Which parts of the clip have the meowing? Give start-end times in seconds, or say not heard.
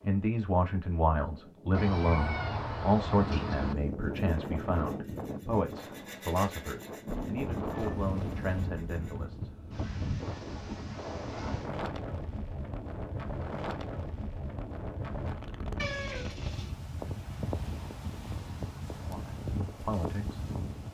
1.7-3.8, 7.0-8.2, 15.8-16.8.